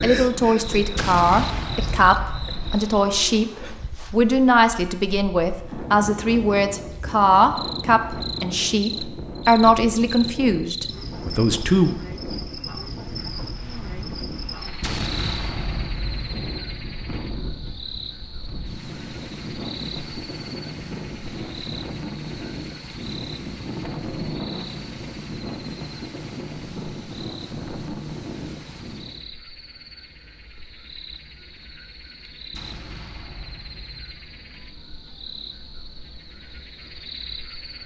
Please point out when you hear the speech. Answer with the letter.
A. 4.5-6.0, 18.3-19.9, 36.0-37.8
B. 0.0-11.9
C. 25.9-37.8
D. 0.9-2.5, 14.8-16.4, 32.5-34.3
B.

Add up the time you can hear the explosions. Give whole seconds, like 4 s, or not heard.
5 s.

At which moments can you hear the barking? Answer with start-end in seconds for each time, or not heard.
not heard.